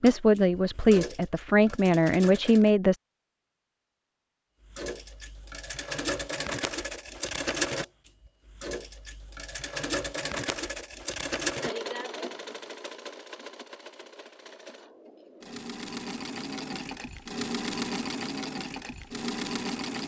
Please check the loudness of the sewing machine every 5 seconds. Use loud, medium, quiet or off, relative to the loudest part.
medium, loud, loud, loud.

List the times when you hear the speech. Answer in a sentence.
The speech can be heard from 0.0 to 3.0 s.